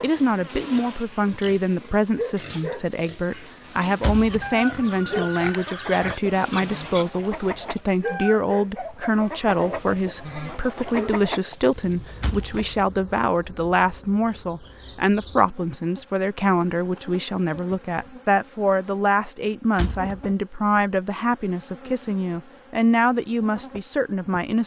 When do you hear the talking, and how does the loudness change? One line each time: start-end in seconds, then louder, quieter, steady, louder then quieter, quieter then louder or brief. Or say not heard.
0.0-24.6 steady.